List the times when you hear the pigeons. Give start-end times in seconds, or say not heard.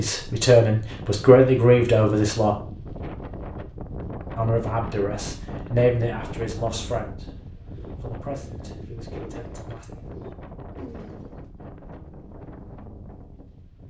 7.5-11.3.